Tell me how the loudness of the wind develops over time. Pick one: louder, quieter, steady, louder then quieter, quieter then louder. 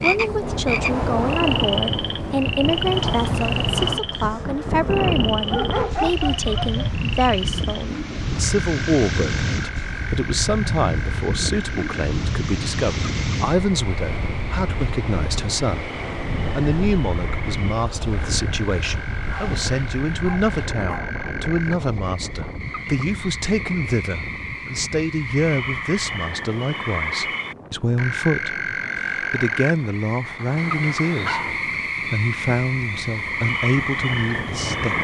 quieter.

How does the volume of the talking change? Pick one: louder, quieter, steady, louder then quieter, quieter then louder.
steady.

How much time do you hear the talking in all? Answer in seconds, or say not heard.
35 s.